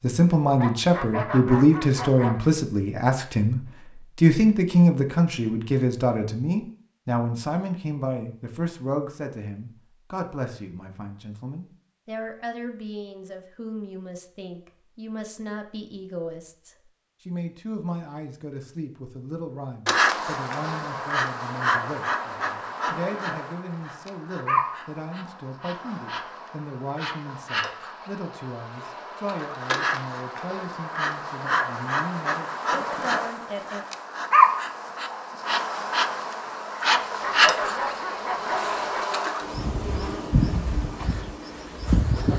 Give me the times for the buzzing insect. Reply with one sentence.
You can hear the buzzing insect from 19.9 to 42.3 s.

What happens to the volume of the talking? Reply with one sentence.
The volume of the talking goes down.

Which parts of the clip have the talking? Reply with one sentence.
You can hear the talking from 0.0 to 33.9 s.